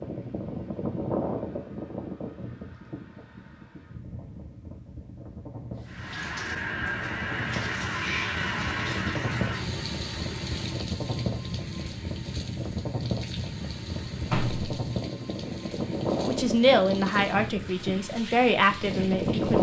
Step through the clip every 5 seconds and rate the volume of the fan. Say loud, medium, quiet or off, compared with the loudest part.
medium, medium, loud, loud.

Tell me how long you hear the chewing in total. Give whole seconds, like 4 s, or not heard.
not heard.